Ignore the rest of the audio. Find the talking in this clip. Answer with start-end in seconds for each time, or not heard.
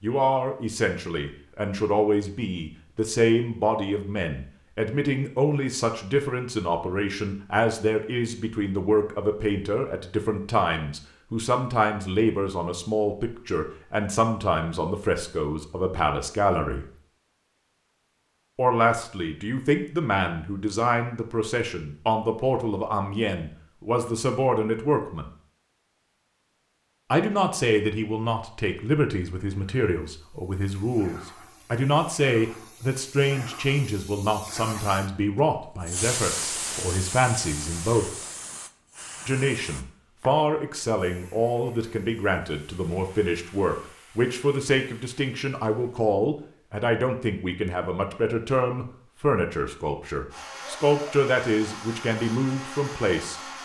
0.0-16.9, 18.6-25.3, 27.1-38.1, 39.2-53.4.